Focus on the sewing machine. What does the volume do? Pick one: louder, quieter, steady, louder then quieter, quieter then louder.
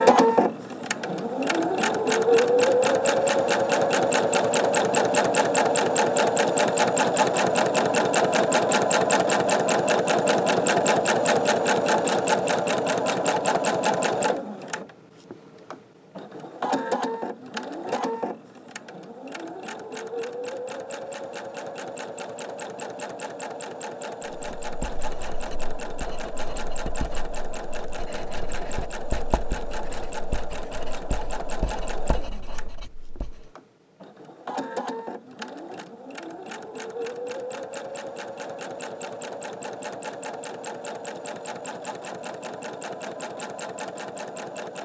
quieter.